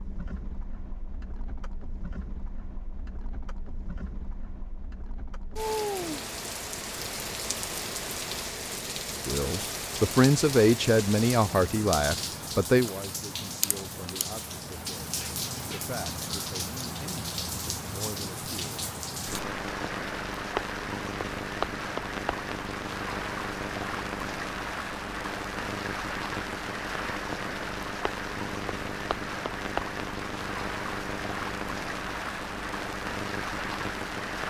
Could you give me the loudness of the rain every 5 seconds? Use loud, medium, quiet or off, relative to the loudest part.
quiet, loud, loud, loud, loud, loud, loud.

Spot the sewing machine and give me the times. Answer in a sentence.
You can't hear the sewing machine here.